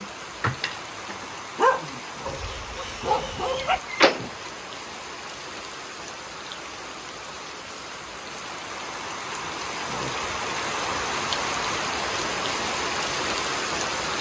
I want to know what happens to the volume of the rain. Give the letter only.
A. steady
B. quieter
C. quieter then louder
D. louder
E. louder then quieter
D.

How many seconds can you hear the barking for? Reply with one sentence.
The barking can be heard for 4 seconds in total.